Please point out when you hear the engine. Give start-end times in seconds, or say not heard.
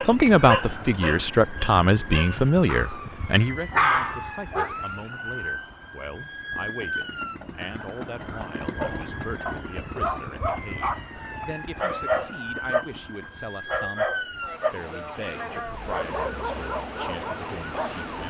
6.5-13.3.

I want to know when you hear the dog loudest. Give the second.
4 s.